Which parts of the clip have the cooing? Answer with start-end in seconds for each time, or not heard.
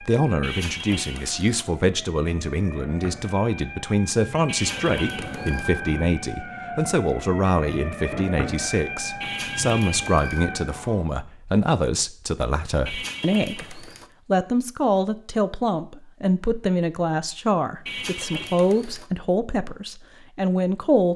0.4-1.6, 4.5-5.7, 9.2-10.4, 12.8-14.1, 17.9-19.1.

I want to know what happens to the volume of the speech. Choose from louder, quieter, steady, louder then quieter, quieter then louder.
steady.